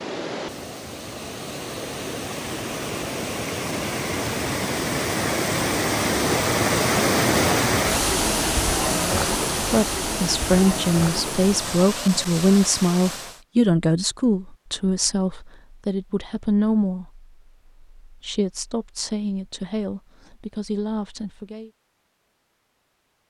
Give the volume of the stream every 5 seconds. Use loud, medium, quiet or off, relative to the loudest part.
medium, loud, medium, off, off.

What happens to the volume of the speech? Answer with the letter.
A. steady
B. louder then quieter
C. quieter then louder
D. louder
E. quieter
E.